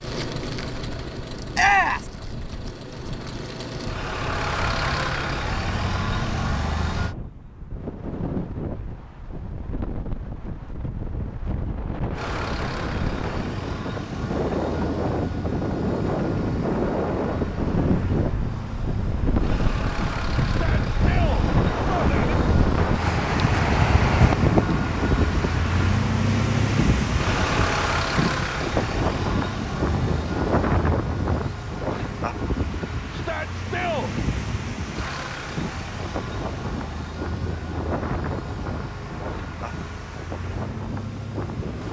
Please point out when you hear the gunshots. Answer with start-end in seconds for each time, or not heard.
not heard.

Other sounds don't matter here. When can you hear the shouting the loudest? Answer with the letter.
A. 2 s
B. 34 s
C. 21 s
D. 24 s
A.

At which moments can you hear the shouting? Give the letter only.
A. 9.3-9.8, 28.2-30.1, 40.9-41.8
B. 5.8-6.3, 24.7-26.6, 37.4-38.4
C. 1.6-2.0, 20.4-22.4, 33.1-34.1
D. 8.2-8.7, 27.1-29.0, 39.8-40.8
C.